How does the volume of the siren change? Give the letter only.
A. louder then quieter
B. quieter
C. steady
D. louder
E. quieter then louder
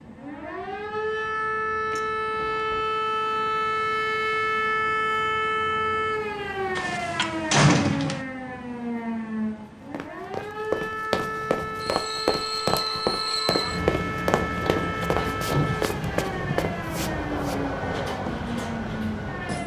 B.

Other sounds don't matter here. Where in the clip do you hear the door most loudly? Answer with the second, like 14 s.
8 s.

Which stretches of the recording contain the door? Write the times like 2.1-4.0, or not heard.
1.9-2.9, 6.8-8.2, 14.7-15.8.